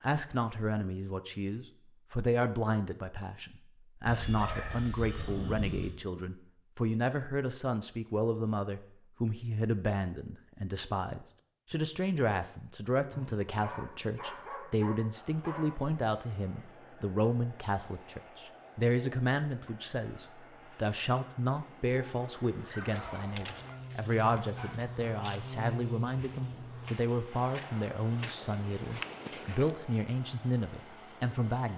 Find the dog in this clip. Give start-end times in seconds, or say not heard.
4.0-6.0, 13.1-15.8, 22.6-24.8.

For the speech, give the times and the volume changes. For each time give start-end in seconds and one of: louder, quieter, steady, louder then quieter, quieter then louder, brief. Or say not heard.
0.0-31.7 steady.